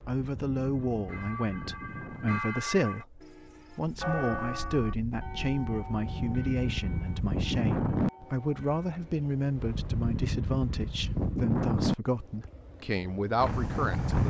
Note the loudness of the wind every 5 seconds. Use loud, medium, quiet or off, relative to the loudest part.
quiet, loud, loud.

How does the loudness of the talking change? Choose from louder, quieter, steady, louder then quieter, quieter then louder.
steady.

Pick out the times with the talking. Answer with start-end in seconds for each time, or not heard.
0.1-14.2.